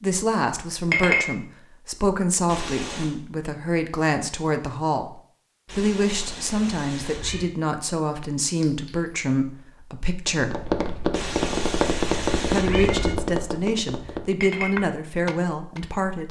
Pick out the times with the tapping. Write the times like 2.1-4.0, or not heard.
10.2-15.8.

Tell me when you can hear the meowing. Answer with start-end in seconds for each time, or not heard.
2.5-3.1, 5.7-7.5, 11.1-13.2.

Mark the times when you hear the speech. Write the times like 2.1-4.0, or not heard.
0.0-10.7, 12.5-16.2.